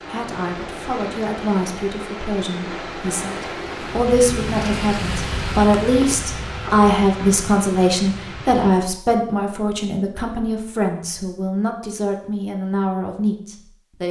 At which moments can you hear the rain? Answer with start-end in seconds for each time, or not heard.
0.0-8.7.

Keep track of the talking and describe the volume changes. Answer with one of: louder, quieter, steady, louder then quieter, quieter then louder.
louder then quieter.